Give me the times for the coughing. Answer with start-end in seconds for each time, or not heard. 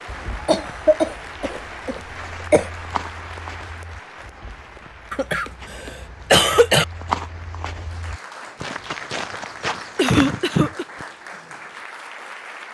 0.5-2.7, 5.1-6.8, 9.9-10.8.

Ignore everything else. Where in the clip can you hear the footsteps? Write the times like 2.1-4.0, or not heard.
0.1-11.1.